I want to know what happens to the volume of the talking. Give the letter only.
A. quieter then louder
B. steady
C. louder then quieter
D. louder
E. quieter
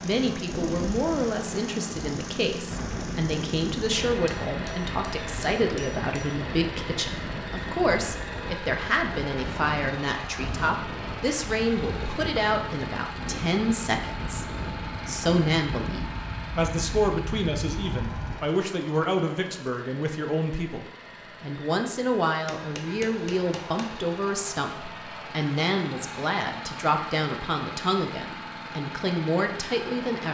B.